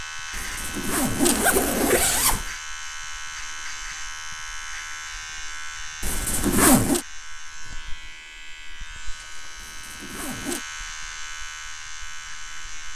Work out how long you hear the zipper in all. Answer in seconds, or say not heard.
4 s.